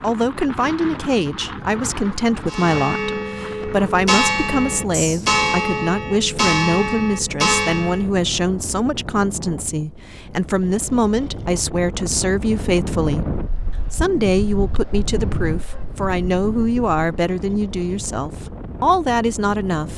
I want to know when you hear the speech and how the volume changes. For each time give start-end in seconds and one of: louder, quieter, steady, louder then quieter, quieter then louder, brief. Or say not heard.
0.0-19.9 steady.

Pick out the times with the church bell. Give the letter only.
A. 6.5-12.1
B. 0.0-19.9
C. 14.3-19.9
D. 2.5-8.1
D.